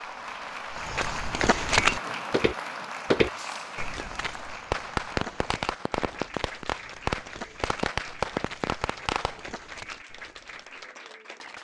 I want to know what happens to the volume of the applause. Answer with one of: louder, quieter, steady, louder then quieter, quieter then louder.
quieter.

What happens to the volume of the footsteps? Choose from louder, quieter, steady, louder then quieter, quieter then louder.
quieter.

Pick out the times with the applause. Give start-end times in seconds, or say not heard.
0.0-11.5.